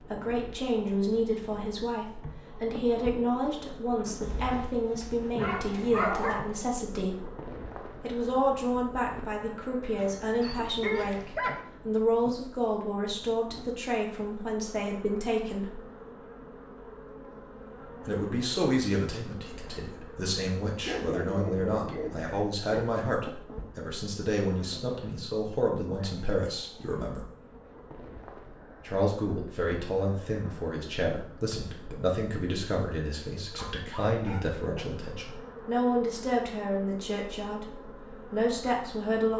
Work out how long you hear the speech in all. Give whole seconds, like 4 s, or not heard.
35 s.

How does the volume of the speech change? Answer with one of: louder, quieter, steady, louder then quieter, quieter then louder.
steady.